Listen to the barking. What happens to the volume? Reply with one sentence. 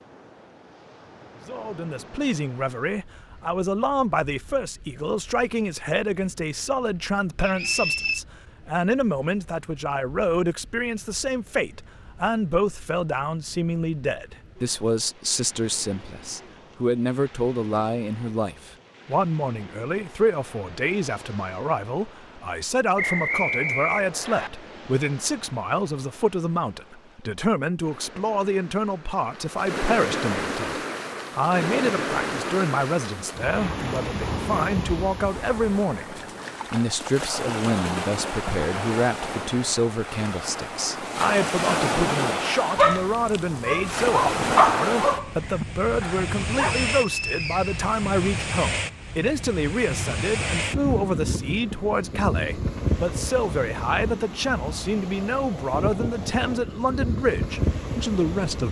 The volume of the barking goes up, then down.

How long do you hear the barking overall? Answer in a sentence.
You can hear the barking for 4 seconds altogether.